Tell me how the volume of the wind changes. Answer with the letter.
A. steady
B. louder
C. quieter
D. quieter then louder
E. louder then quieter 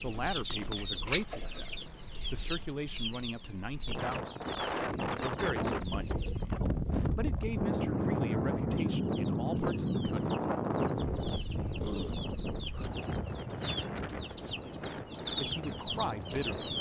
E.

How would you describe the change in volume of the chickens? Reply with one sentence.
The volume of the chickens goes down, then up.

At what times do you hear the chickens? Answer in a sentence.
You can hear the chickens from 0.0 to 6.6 s and from 8.8 to 16.7 s.